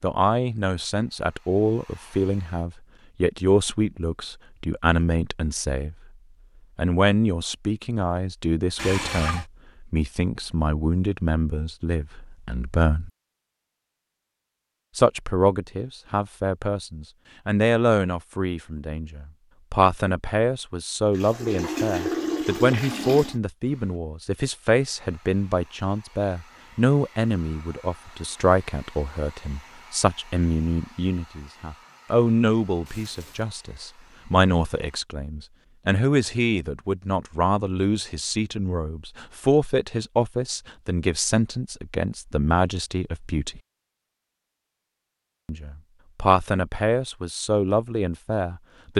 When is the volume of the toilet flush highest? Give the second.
22 s.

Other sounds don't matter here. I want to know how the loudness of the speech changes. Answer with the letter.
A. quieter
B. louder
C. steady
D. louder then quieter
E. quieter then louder
C.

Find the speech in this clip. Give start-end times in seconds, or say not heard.
0.0-6.0, 6.8-13.1, 14.9-43.6, 45.5-48.9.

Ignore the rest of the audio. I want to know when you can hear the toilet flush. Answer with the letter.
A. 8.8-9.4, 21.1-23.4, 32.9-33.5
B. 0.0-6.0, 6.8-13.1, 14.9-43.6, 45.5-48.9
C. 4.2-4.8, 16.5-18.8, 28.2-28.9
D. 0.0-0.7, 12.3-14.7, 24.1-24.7
A.